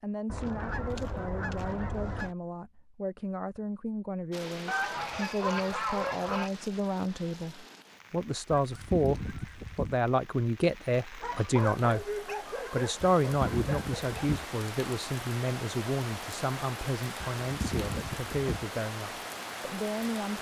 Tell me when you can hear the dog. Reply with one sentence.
The dog can be heard from 11.2 to 14.2 s.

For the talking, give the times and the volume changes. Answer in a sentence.
The talking can be heard from 0.0 to 12.1 s, getting louder; and from 12.7 to 20.3 s, getting quieter.